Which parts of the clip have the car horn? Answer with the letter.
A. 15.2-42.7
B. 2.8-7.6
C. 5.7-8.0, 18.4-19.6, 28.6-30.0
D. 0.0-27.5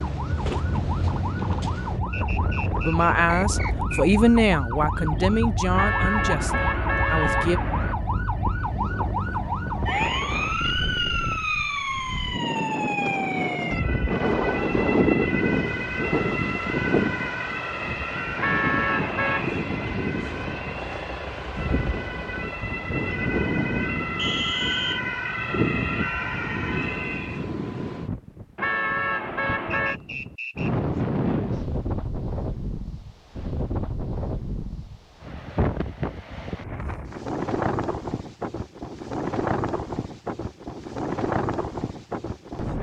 C.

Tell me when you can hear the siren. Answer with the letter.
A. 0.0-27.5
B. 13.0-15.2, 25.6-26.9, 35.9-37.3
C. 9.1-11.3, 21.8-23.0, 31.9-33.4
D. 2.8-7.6
A.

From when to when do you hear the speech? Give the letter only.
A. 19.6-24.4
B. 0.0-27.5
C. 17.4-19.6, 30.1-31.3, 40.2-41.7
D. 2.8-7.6
D.